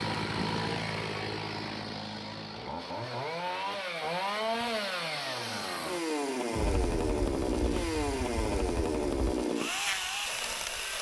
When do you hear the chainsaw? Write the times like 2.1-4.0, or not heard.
0.0-10.9.